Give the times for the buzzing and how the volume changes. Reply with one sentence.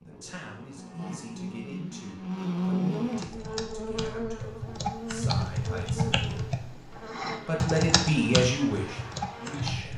The buzzing can be heard from 0.0 to 9.9 s, getting louder then quieter.